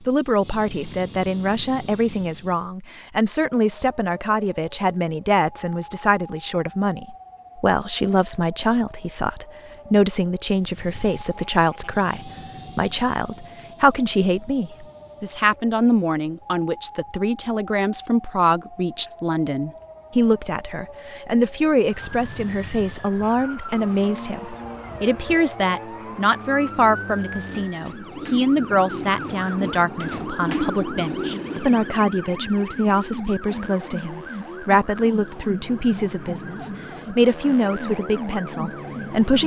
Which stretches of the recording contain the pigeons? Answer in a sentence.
The pigeons can be heard from 26.5 to 31.9 s.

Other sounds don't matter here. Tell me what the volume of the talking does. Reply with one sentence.
The loudness of the talking stays about the same.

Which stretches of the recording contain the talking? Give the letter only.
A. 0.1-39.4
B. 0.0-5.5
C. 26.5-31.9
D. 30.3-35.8
A.